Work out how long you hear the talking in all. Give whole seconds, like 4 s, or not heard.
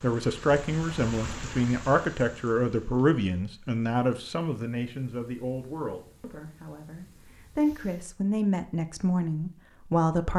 10 s.